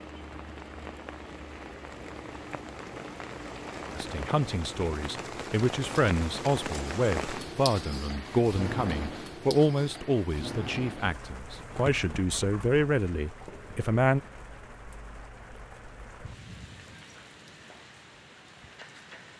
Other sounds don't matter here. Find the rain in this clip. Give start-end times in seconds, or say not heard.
0.0-19.3.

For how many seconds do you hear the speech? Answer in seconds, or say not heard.
10 s.